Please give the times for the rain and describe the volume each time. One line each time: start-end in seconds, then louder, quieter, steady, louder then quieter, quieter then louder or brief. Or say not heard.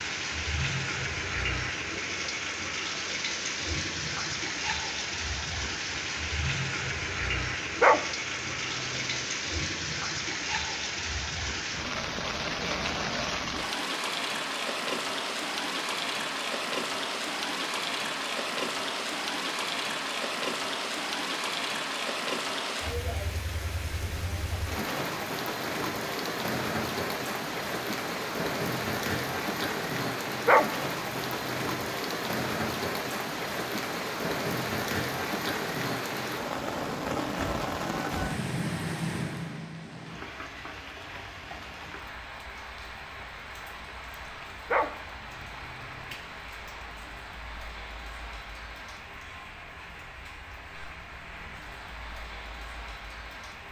0.0-53.6 quieter.